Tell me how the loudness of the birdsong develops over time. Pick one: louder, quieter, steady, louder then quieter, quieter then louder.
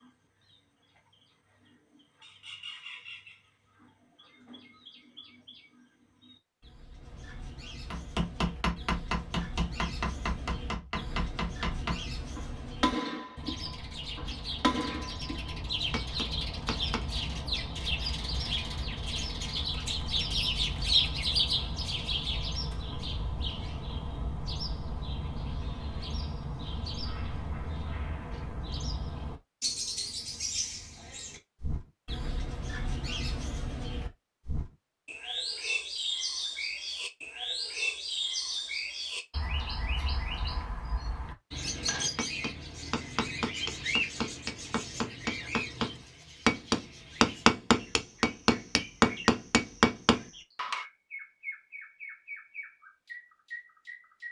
louder then quieter.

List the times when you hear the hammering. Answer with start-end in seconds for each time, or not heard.
7.9-17.1, 41.5-50.9.